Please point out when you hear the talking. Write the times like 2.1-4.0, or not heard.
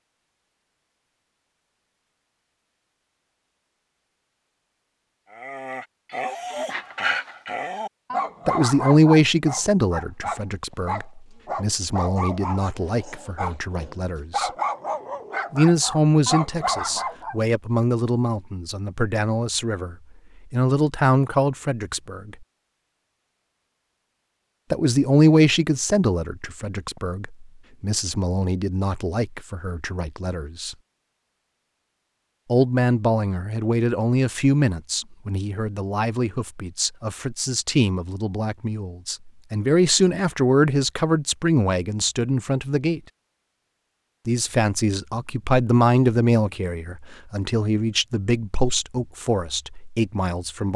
8.4-14.5, 15.5-22.4, 24.7-30.8, 32.5-43.0, 44.2-50.7.